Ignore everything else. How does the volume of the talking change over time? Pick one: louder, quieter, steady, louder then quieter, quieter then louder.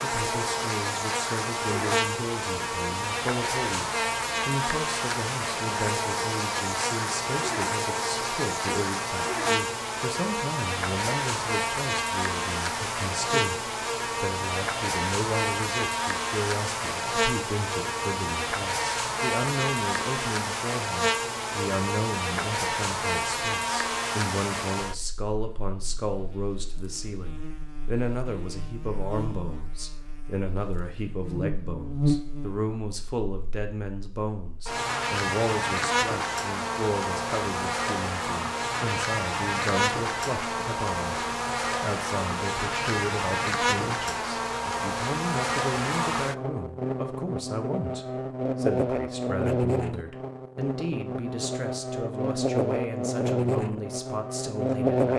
steady.